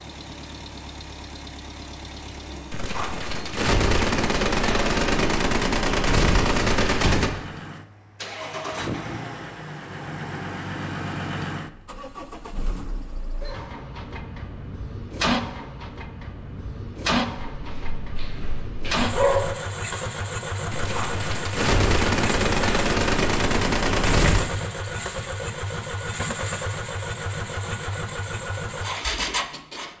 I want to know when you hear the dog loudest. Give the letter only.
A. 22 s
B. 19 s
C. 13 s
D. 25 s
B.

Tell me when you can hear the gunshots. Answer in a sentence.
The gunshots can be heard from 2.7 to 7.3 s and from 20.7 to 24.5 s.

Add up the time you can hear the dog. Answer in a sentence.
You can hear the dog for 2 seconds altogether.